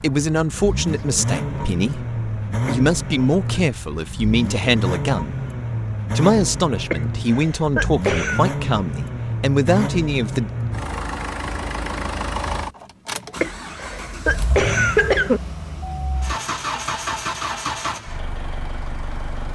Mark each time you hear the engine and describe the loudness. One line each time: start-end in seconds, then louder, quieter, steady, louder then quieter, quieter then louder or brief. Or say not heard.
0.0-19.5 steady.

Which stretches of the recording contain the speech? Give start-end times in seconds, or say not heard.
0.0-5.3, 6.2-10.5.